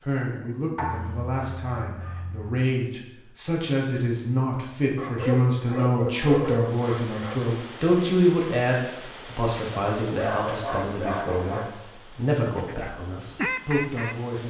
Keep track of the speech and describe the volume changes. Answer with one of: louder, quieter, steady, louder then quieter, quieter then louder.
louder then quieter.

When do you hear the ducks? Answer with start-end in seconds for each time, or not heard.
12.6-14.4.